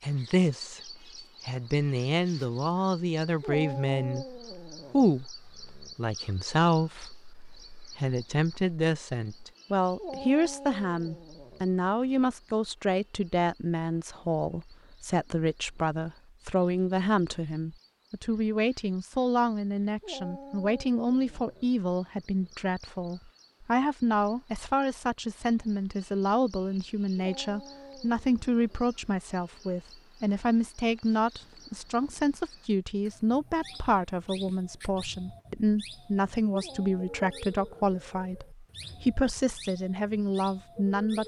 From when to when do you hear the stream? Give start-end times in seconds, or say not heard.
not heard.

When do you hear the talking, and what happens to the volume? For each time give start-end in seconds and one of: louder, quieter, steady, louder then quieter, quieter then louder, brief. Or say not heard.
0.0-41.2 steady.